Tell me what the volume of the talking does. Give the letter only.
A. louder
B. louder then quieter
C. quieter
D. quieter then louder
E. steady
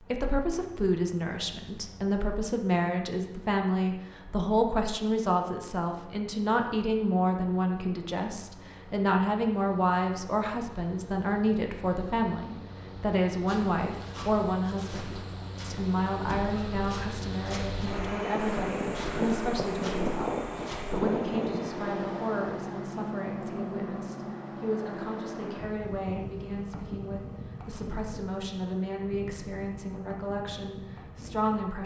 C.